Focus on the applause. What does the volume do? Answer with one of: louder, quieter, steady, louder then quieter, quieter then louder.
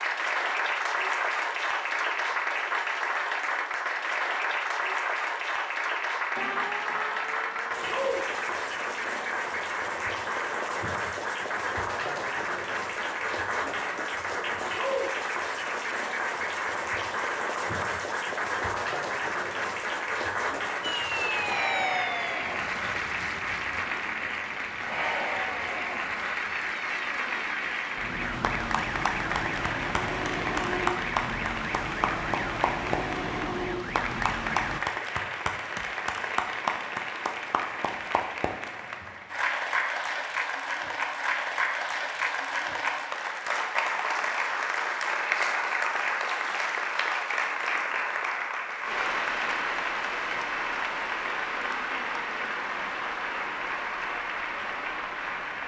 steady.